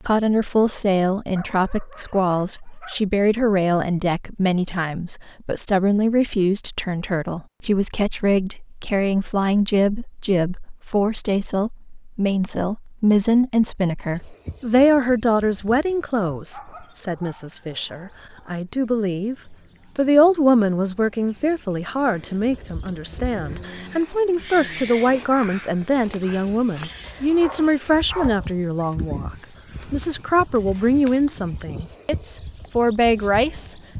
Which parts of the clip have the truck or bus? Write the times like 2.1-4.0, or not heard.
not heard.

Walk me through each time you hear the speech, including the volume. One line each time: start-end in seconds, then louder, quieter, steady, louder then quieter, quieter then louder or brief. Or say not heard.
0.1-33.8 steady.